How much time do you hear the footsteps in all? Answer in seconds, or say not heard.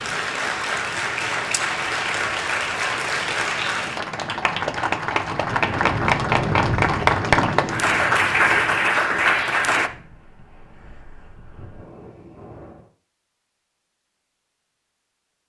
not heard.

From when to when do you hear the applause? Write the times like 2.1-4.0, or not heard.
0.0-9.9.